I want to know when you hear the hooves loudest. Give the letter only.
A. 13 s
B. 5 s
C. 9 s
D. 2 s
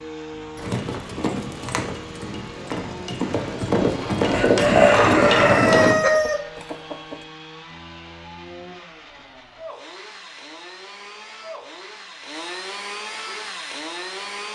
B.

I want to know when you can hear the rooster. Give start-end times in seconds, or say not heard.
4.2-7.2.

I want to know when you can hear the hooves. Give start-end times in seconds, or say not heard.
0.6-6.0.